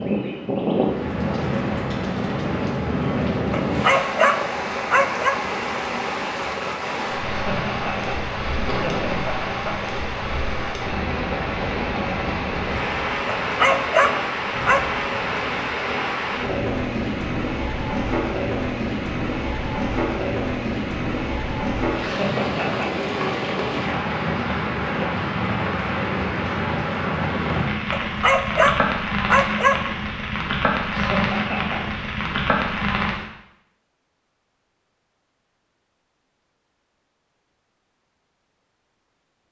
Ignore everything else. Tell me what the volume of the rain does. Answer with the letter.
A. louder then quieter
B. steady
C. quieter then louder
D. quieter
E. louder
B.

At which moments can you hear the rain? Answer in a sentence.
The rain can be heard from 0.0 to 33.2 s.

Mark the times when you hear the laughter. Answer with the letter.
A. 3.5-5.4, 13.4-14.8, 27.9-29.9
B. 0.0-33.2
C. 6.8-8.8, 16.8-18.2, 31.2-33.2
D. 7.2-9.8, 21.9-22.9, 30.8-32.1
D.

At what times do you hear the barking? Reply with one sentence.
You can hear the barking from 3.5 to 5.4 s, from 13.4 to 14.8 s and from 27.9 to 29.9 s.